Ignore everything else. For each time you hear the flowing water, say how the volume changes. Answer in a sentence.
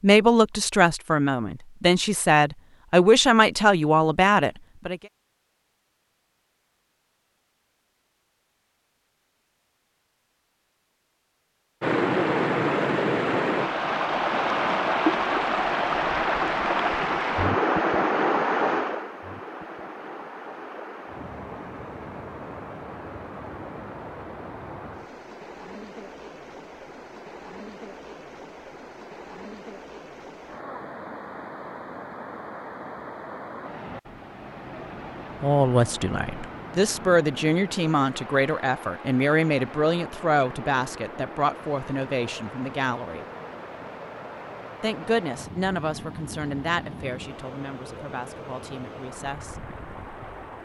The flowing water can be heard from 11.8 to 50.6 s, getting quieter.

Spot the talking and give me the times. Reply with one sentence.
You can hear the talking from 0.0 to 5.0 s, from 35.4 to 43.2 s and from 44.8 to 49.6 s.